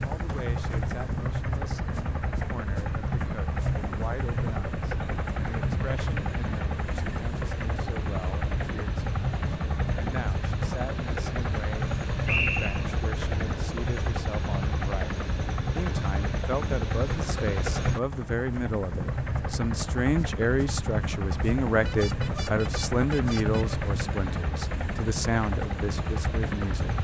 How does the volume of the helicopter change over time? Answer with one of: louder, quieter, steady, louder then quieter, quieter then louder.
steady.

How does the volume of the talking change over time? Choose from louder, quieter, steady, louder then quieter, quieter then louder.
louder.